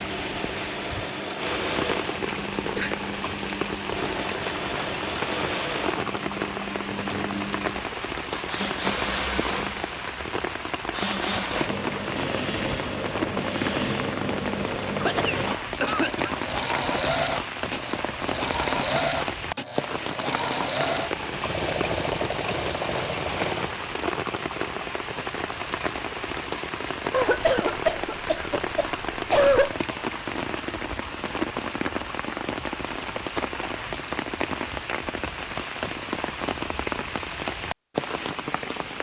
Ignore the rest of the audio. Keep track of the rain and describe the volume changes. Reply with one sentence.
The loudness of the rain stays about the same.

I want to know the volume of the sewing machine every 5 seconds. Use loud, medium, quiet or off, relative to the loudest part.
loud, loud, loud, loud, loud, off, off, off.